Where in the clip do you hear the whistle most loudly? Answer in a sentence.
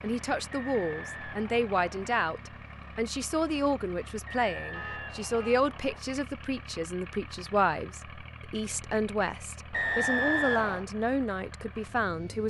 The loudest moment of the whistle is at 10 seconds.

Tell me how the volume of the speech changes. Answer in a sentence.
The loudness of the speech stays about the same.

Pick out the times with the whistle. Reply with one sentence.
You can hear the whistle from 0.5 to 2.1 s, from 4.2 to 6.0 s and from 9.7 to 10.8 s.